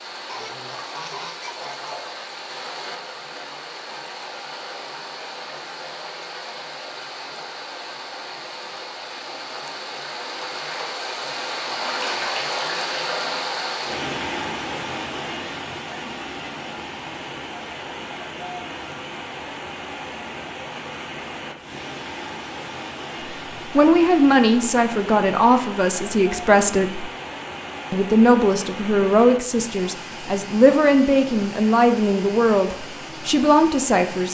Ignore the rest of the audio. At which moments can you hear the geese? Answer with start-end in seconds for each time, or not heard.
0.2-2.1.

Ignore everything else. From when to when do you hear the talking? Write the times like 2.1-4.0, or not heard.
23.8-27.1, 27.9-34.3.